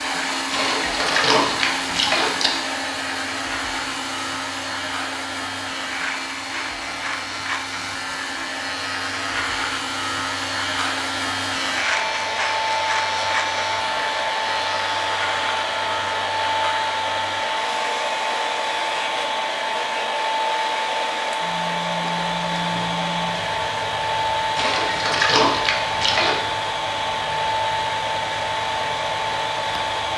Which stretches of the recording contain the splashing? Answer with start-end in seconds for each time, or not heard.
0.5-2.5, 24.6-26.4.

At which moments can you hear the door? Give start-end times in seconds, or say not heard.
not heard.